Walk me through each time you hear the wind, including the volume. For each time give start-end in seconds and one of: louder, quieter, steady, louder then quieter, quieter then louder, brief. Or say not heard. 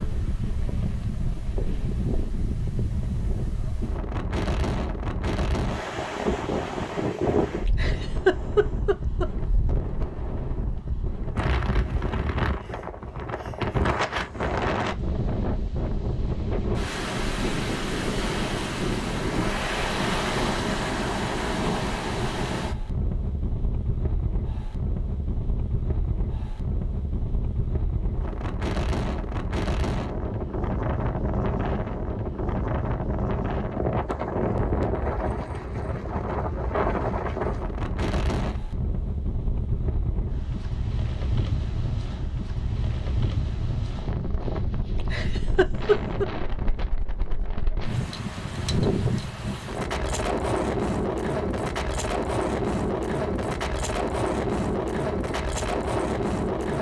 0.0-56.7 steady.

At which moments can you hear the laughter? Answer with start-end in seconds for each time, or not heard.
7.7-9.2, 45.1-46.2.